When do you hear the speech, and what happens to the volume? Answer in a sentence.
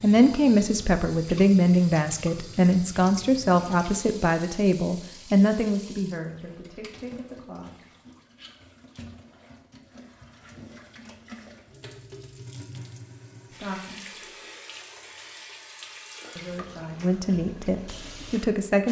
You can hear the speech from 0.0 to 7.8 s, getting quieter; briefly from 13.5 to 14.2 s; and briefly from 16.4 to 18.8 s.